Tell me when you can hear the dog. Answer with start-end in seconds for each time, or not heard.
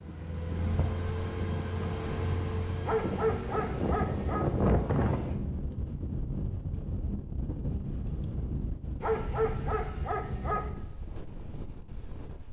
2.8-4.5, 9.0-10.7.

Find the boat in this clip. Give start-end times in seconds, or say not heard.
0.0-5.3.